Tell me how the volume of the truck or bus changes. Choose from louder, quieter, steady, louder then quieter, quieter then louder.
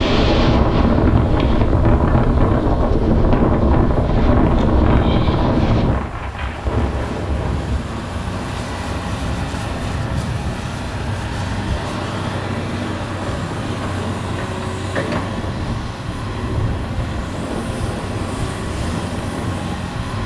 louder.